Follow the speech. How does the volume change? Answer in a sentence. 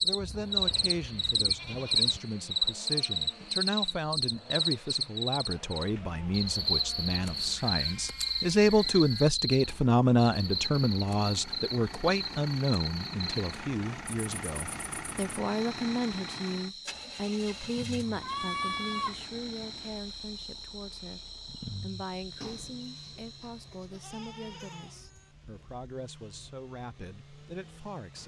The volume of the speech goes up, then down.